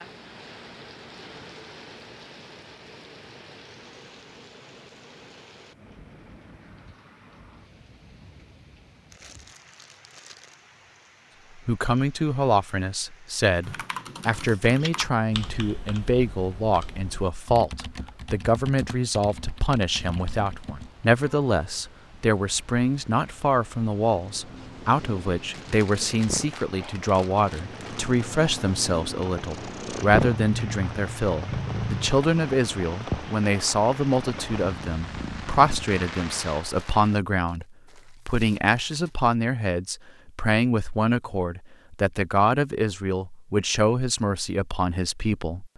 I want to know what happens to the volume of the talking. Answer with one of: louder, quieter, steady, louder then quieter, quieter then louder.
steady.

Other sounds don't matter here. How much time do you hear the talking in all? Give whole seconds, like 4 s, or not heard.
34 s.